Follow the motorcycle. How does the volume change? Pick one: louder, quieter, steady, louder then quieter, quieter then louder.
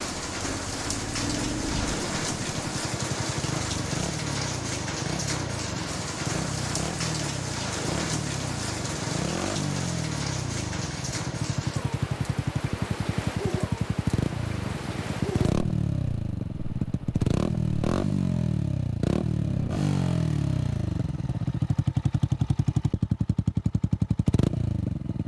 louder.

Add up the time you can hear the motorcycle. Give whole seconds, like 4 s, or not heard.
25 s.